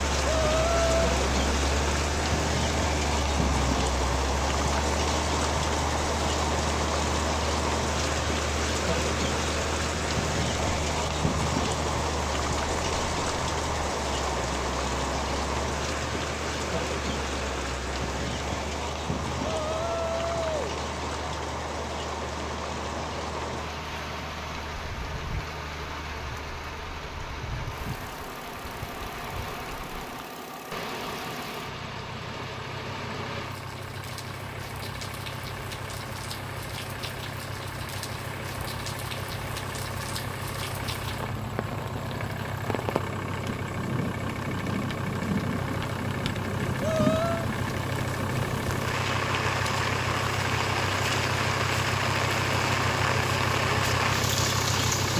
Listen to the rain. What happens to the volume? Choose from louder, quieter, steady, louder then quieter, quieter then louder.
quieter then louder.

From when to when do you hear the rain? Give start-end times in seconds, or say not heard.
0.0-55.1.